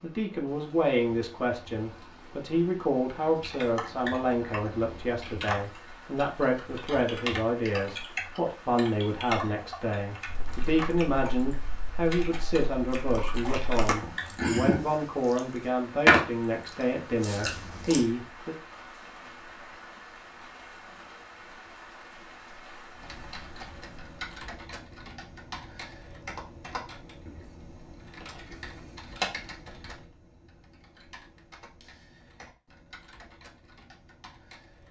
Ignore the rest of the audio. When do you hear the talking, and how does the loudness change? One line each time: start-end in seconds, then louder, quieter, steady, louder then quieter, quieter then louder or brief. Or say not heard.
0.0-18.6 steady.